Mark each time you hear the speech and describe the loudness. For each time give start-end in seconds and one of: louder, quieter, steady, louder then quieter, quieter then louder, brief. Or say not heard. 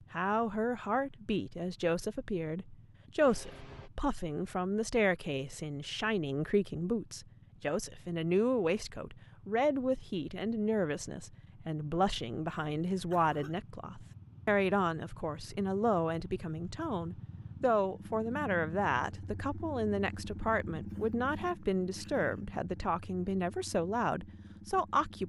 0.1-25.2 steady.